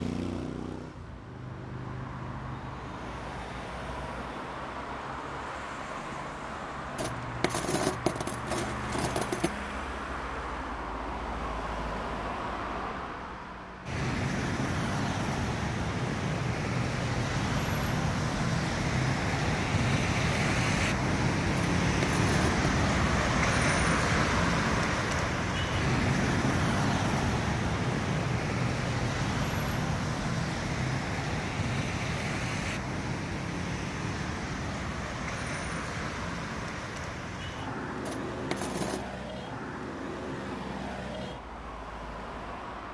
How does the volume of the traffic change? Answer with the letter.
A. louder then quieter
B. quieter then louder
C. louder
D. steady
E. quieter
A.